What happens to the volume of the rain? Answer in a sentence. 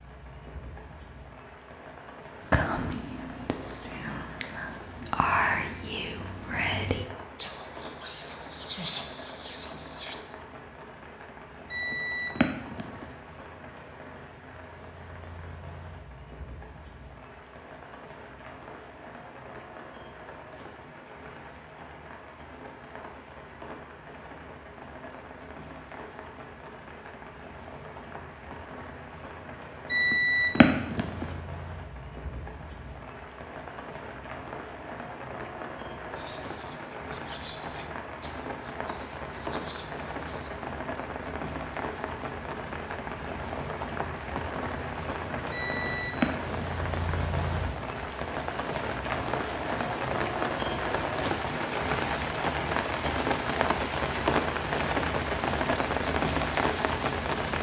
The volume of the rain goes up.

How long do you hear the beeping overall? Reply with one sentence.
You can hear the beeping for 4 seconds altogether.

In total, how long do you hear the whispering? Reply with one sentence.
The whispering can be heard for 12 seconds in total.